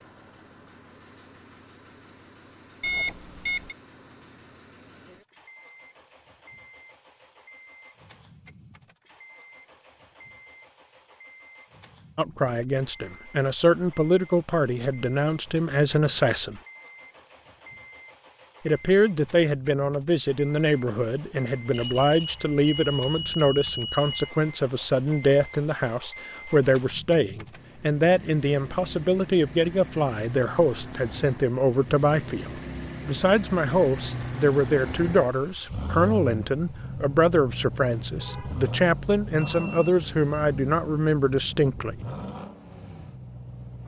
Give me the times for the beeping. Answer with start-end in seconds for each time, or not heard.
2.8-3.8, 21.7-24.3, 39.5-40.5.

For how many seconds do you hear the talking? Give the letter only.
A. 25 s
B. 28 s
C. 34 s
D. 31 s
B.